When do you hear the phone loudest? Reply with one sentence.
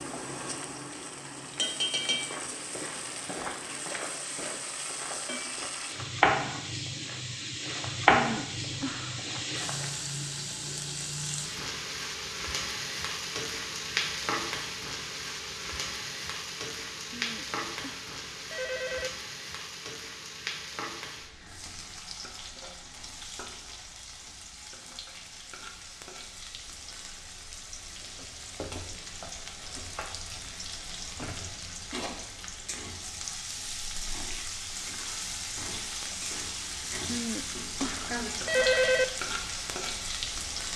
The volume of the phone peaks at 39 seconds.